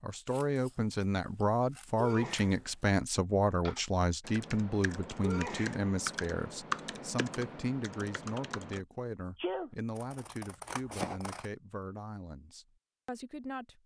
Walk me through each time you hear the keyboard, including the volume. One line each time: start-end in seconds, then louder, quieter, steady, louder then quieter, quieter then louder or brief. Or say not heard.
3.6-8.8 louder then quieter.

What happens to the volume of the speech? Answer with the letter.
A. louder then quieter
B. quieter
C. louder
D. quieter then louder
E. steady
B.